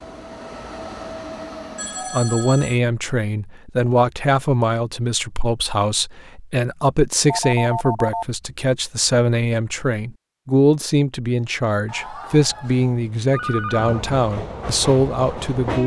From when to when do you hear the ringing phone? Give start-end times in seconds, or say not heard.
1.8-2.8, 7.2-8.2, 11.8-14.1.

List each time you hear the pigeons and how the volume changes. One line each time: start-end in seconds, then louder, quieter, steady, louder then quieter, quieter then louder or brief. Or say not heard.
not heard.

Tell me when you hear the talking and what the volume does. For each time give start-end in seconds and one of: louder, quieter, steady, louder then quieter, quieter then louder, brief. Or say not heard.
2.1-15.8 steady.